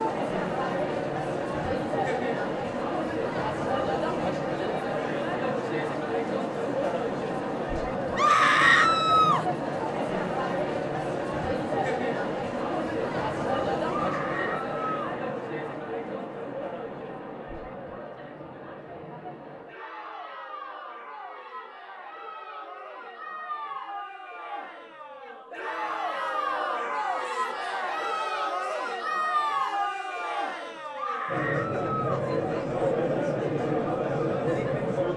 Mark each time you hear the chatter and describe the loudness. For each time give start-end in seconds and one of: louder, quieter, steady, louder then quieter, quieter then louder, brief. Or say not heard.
0.0-35.1 quieter then louder.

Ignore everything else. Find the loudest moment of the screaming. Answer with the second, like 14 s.
9 s.